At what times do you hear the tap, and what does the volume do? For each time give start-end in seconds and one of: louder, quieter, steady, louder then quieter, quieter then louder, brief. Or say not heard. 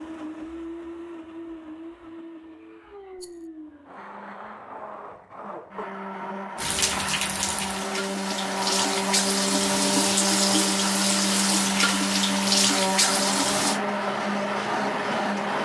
6.5-13.8 louder.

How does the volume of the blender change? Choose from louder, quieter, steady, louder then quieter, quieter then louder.
louder.